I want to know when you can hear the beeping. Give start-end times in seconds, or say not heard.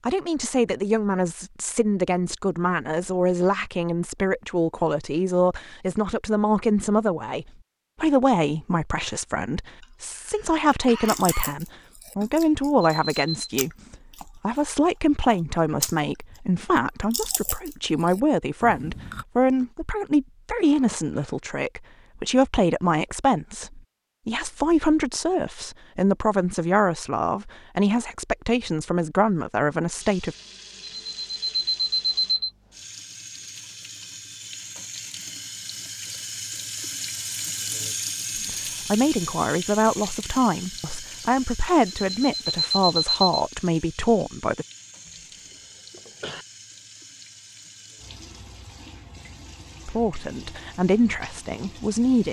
12.8-13.5, 30.8-32.5, 41.9-43.4.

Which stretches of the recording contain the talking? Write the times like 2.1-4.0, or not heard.
0.1-30.4, 38.5-44.6, 49.9-52.2.